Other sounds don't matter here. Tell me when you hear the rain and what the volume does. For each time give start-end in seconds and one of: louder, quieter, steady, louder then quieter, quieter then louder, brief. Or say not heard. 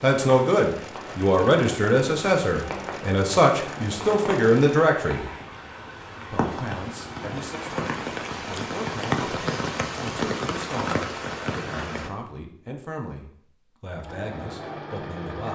0.2-12.1 louder.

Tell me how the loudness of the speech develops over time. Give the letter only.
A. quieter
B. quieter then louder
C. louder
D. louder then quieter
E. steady
A.